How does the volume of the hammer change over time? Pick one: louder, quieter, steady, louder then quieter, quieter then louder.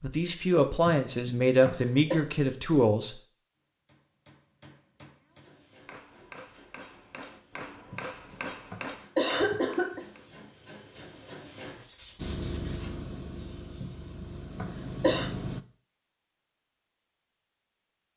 louder.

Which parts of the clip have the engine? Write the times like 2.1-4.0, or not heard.
12.2-15.7.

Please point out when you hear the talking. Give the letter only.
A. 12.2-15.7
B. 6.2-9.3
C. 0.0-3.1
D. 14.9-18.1
C.